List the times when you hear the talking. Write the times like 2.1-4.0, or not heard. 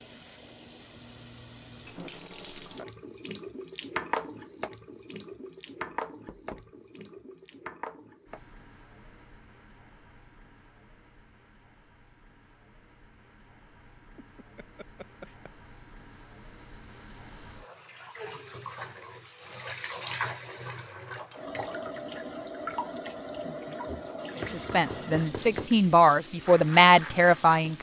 24.4-27.7.